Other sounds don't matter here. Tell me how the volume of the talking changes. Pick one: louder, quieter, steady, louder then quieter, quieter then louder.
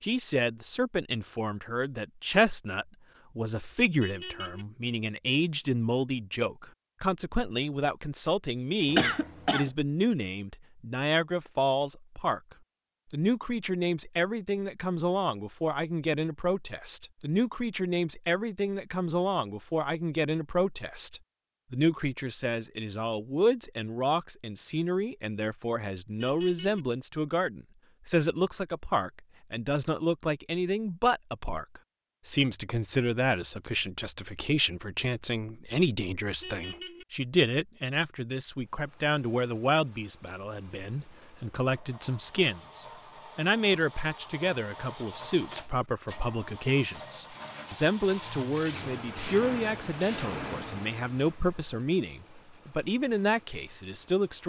steady.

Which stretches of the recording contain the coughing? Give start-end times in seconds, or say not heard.
8.8-9.7.